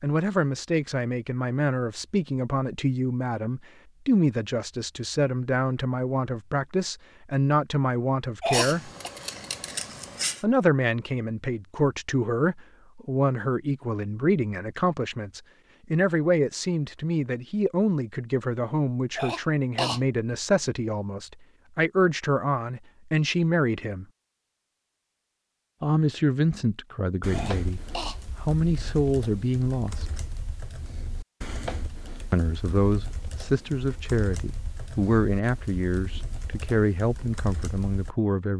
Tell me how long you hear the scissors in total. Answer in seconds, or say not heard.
2 s.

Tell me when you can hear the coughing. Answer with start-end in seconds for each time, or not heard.
8.4-9.1, 19.1-20.0, 27.3-28.1.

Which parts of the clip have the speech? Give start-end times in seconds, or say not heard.
0.0-8.9, 10.4-24.1, 25.8-30.1, 32.3-38.5.